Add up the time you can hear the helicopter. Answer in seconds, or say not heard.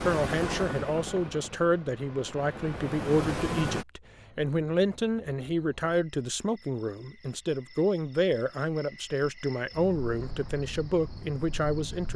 4 s.